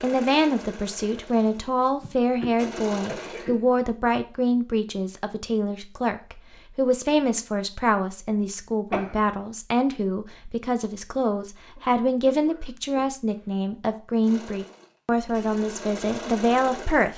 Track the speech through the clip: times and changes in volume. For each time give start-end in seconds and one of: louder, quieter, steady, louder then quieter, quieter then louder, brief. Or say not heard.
0.0-17.1 steady.